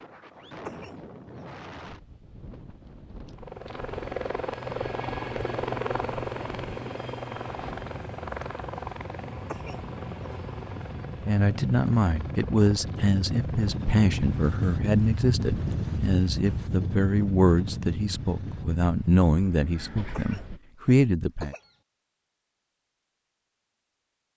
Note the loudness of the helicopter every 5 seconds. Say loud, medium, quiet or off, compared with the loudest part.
loud, loud, medium, off, off.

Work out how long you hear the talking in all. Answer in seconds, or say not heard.
10 s.